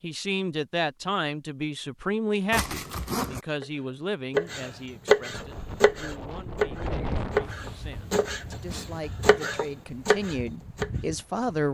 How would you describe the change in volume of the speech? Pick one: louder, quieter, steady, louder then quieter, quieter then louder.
quieter then louder.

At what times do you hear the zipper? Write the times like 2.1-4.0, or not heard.
2.5-3.4.